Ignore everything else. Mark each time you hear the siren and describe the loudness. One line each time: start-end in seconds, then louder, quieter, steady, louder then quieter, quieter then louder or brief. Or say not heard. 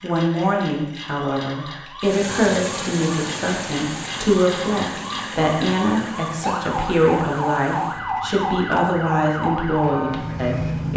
0.0-10.9 louder.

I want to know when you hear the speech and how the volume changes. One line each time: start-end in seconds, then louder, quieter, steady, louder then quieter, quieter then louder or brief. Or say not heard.
0.0-10.9 steady.